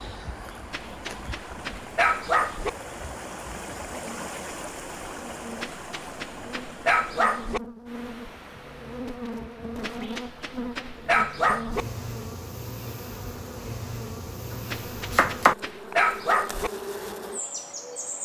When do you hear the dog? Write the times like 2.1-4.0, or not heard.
0.7-2.7, 5.6-7.6, 9.8-11.8, 14.7-16.7.